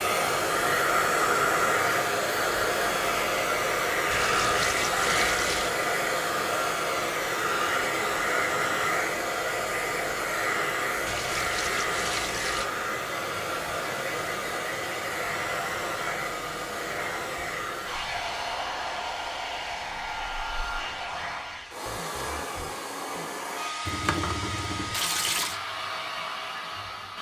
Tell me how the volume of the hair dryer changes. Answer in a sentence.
The loudness of the hair dryer goes down.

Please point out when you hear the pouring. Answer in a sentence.
The pouring can be heard from 4.1 to 5.8 s, from 11.1 to 12.7 s and from 23.9 to 25.6 s.